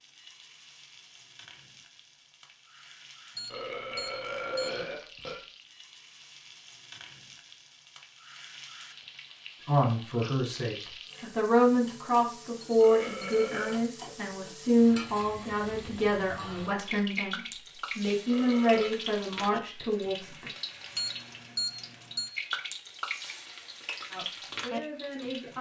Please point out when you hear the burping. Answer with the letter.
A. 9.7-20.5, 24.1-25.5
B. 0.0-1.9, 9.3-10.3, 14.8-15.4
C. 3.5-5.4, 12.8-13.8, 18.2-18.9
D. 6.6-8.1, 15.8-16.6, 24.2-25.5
C.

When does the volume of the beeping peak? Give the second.
22 s.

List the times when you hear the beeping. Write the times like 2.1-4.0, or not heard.
3.4-4.8, 12.6-13.4, 20.9-22.3.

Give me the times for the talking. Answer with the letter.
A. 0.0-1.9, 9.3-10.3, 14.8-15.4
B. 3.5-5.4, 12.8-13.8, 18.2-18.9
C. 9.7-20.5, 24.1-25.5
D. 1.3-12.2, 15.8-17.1
C.